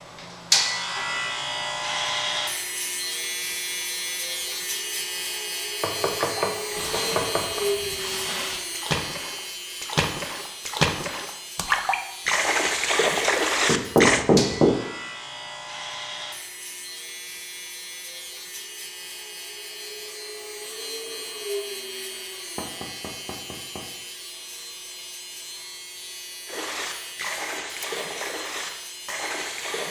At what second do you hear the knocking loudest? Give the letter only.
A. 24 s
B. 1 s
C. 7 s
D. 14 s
D.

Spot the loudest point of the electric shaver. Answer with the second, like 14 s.
1 s.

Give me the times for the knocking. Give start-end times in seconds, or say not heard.
5.8-7.6, 13.7-14.8, 22.6-23.9.